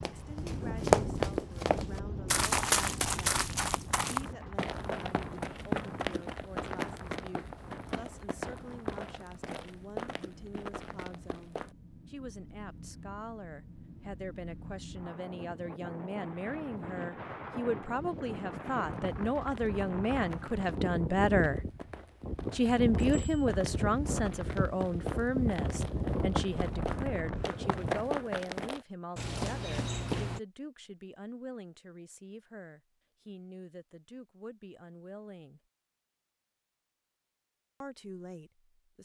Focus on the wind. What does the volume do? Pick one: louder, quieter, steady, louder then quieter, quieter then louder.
quieter then louder.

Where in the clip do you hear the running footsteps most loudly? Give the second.
1 s.